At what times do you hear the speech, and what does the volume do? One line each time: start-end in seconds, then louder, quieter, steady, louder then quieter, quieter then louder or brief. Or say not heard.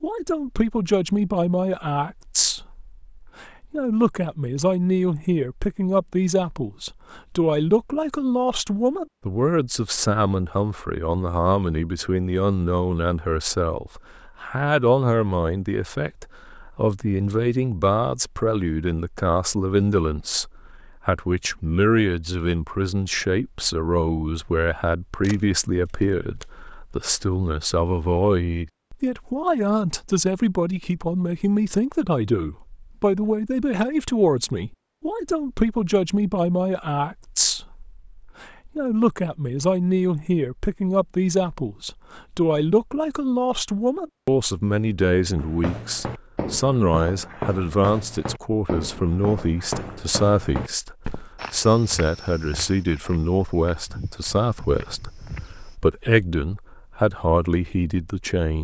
0.0-58.5 steady.